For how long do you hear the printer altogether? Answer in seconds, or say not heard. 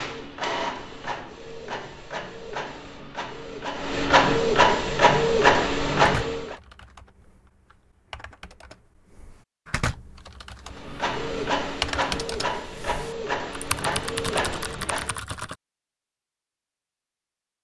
11 s.